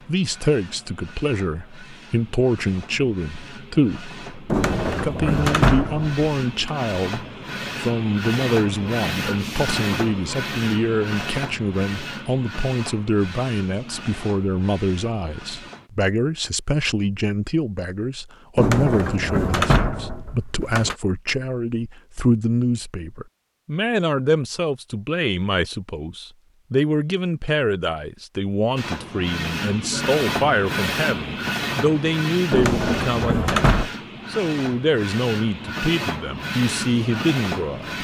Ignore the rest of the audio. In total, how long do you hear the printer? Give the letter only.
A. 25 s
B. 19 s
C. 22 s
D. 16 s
A.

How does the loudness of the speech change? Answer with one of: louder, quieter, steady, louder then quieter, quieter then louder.
steady.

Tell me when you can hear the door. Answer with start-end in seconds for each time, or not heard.
4.5-6.7, 18.6-20.9, 32.5-33.9.